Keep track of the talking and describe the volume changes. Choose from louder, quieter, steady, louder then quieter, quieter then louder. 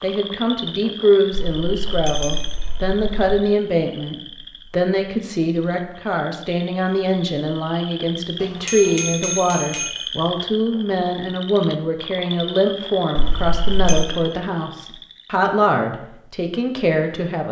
steady.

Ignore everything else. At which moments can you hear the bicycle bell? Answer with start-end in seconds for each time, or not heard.
1.3-3.4, 8.4-9.9, 13.2-14.1.